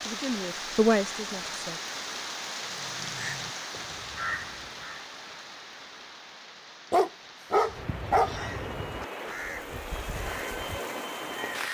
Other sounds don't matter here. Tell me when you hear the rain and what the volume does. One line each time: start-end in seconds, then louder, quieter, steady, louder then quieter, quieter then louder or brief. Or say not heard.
0.0-11.6 quieter then louder.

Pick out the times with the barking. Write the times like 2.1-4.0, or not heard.
6.9-8.3.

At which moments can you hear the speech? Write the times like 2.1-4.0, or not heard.
0.0-1.8.